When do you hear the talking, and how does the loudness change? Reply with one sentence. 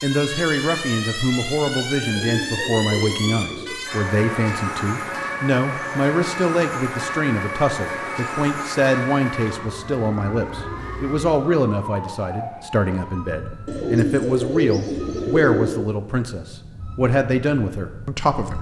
The talking can be heard from 0.0 to 18.5 s, at a steady volume.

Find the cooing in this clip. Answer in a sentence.
The cooing can be heard from 2.0 to 3.8 s and from 13.7 to 15.9 s.